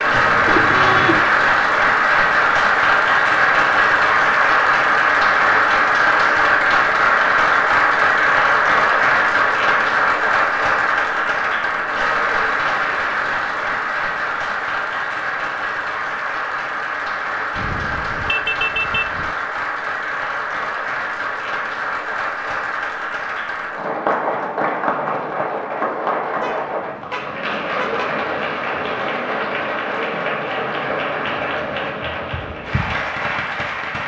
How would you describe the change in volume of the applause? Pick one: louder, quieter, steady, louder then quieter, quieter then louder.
quieter.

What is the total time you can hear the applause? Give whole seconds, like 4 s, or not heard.
34 s.